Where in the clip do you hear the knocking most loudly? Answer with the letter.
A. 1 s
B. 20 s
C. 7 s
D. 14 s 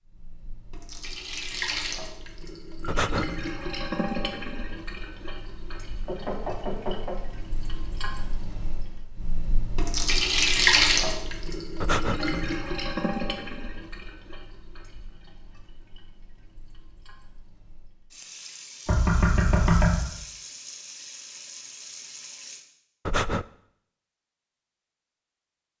B.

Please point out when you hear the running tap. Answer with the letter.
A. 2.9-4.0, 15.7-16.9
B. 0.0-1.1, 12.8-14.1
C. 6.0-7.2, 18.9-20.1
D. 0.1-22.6
D.